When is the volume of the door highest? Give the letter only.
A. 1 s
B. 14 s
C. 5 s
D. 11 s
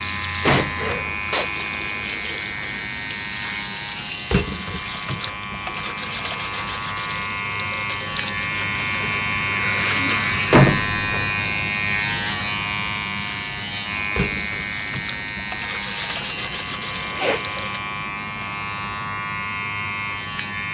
D.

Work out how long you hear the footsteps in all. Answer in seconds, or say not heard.
not heard.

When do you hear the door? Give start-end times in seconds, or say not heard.
0.5-1.1, 10.5-11.2.